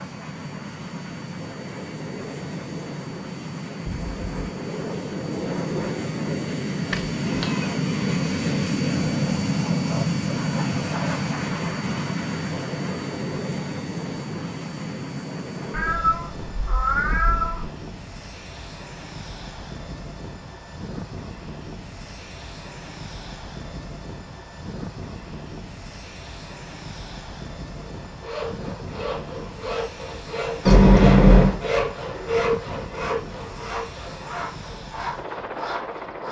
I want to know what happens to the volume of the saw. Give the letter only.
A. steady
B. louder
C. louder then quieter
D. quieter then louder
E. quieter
C.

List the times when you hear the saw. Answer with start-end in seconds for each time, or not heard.
27.9-36.2.